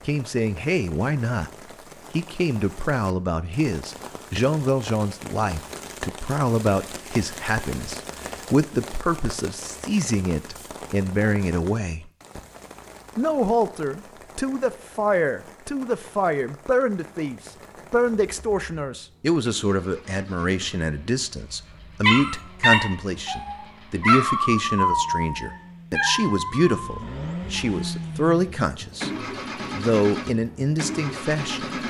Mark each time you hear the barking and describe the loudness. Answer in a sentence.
The barking can be heard from 22.0 to 28.1 s, getting quieter.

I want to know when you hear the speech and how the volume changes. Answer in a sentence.
The speech can be heard briefly from 0.1 to 1.5 s; from 2.1 to 12.1 s, at a steady volume; from 13.2 to 29.1 s, at a steady volume; and briefly from 29.7 to 31.6 s.